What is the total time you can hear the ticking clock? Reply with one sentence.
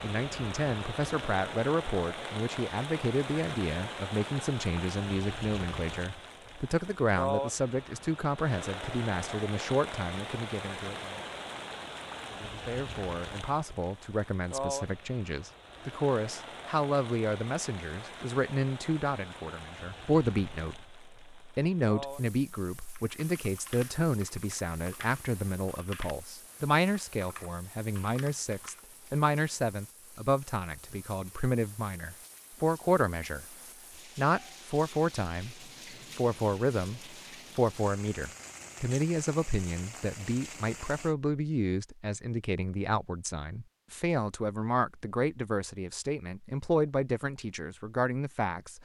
The ticking clock can't be heard in this clip.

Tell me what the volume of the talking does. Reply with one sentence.
The loudness of the talking stays about the same.